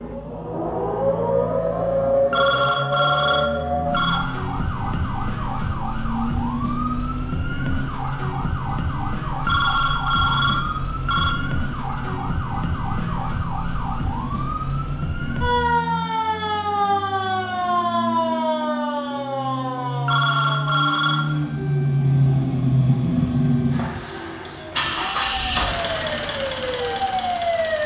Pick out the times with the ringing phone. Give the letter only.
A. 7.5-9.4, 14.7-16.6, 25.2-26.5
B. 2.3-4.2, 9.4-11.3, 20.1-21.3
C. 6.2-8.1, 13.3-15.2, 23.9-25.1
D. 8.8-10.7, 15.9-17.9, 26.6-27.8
B.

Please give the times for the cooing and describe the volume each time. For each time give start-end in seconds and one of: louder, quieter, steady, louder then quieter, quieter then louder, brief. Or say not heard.
not heard.